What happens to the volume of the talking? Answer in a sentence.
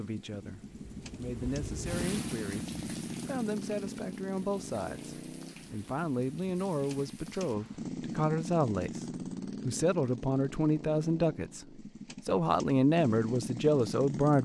The volume of the talking goes up.